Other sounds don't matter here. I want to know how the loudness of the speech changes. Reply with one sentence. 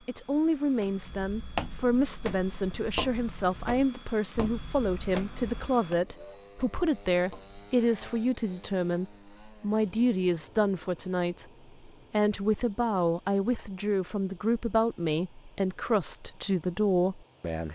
The volume of the speech stays about the same.